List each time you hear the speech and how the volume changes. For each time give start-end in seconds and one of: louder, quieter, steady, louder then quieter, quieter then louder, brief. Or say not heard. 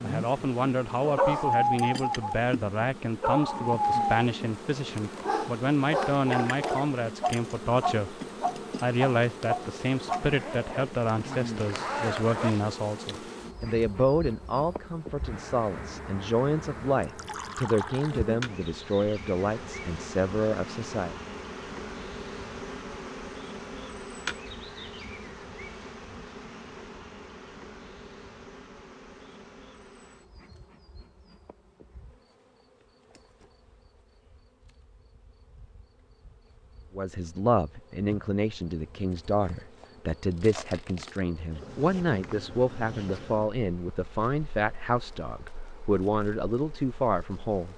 0.0-8.2 steady
8.8-21.1 steady
37.0-47.7 steady.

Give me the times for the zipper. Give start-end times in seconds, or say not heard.
10.2-12.8.